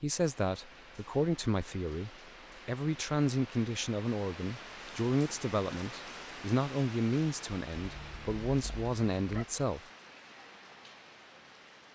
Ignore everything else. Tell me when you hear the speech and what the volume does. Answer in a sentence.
The speech can be heard from 0.0 to 9.8 s, at a steady volume.